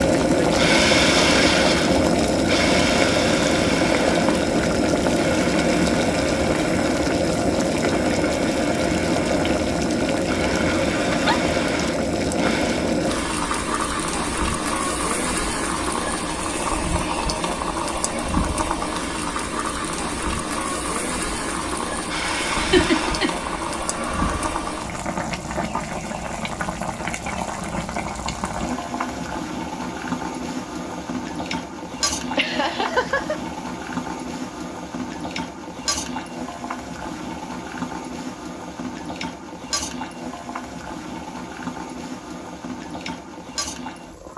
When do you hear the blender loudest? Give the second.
1 s.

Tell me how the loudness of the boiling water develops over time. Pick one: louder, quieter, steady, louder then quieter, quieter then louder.
quieter.